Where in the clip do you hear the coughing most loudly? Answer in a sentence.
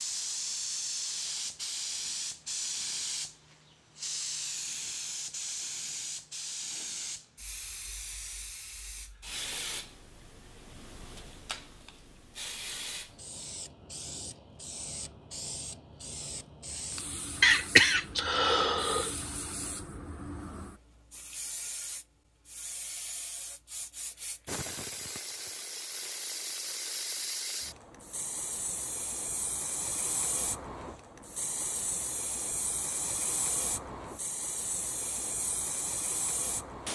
The loudest moment of the coughing is at 18 seconds.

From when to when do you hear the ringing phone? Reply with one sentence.
The ringing phone can't be heard in this clip.